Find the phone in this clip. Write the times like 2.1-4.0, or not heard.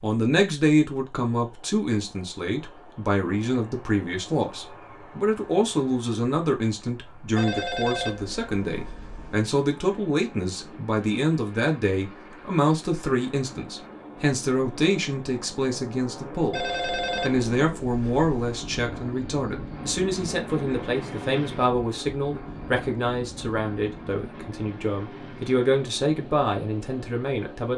7.3-9.3, 16.5-18.6.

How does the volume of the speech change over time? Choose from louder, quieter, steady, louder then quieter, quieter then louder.
steady.